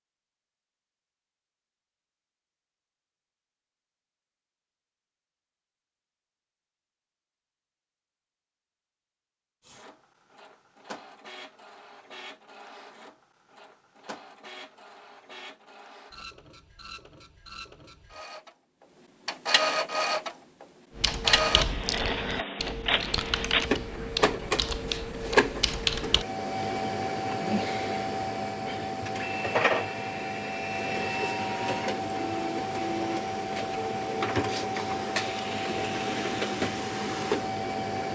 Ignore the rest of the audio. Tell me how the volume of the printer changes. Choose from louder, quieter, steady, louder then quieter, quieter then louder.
louder.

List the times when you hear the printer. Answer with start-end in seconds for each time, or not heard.
9.6-38.1.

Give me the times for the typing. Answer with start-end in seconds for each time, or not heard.
20.9-26.2.